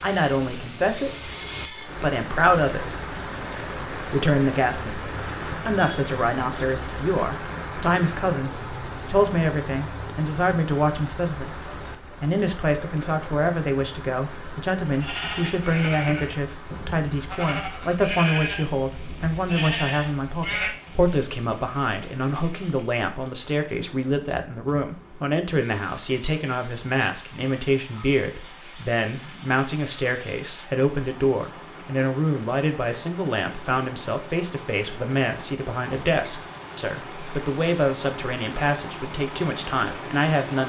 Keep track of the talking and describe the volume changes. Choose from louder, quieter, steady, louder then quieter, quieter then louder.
steady.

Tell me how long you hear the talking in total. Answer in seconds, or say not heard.
40 s.